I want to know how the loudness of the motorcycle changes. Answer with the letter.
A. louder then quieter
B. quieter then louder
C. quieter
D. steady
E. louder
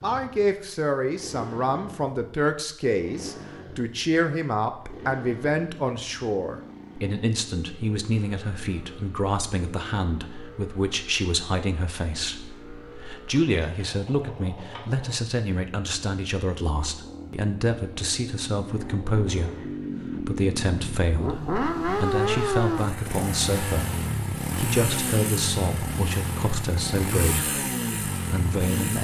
E.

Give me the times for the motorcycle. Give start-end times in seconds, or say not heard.
0.0-28.9.